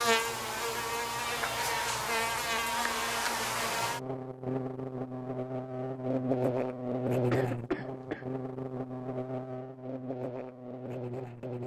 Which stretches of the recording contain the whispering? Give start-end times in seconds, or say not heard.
not heard.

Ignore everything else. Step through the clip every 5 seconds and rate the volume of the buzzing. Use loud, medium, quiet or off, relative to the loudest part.
loud, loud, medium.